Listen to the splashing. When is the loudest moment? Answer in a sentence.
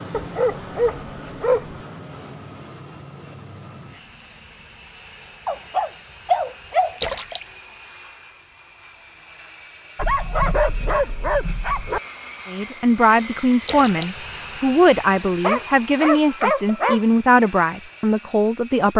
The loudest moment of the splashing is at 7 seconds.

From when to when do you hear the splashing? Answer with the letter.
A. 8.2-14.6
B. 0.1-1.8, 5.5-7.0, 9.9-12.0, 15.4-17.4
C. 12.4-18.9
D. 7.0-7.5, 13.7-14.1
D.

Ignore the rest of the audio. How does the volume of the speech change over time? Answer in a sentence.
The volume of the speech stays about the same.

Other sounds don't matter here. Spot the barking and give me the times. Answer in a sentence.
The barking can be heard from 0.1 to 1.8 s, from 5.5 to 7.0 s, from 9.9 to 12.0 s and from 15.4 to 17.4 s.